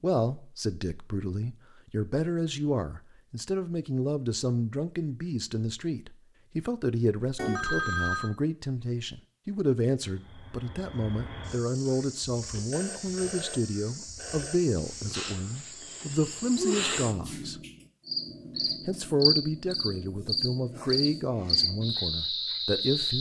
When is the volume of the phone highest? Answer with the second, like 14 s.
8 s.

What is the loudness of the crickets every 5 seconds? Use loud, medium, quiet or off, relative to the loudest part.
off, off, quiet, loud, loud.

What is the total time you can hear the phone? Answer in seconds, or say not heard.
3 s.